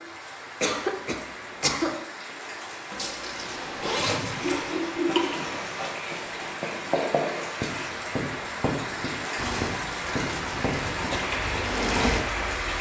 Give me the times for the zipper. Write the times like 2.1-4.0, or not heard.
2.9-4.4.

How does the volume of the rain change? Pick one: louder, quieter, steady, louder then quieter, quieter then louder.
louder.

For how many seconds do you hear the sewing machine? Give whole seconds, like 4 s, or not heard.
3 s.